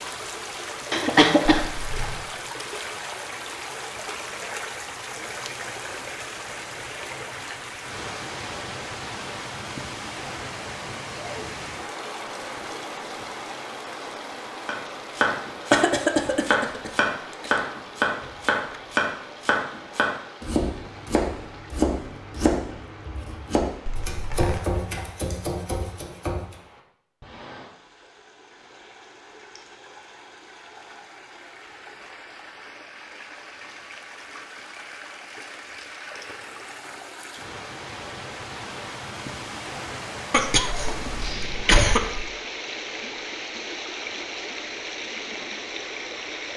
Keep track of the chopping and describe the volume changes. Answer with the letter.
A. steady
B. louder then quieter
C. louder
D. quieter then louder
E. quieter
E.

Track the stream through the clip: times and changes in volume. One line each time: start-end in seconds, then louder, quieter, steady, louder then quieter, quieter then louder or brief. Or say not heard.
0.0-46.5 quieter then louder.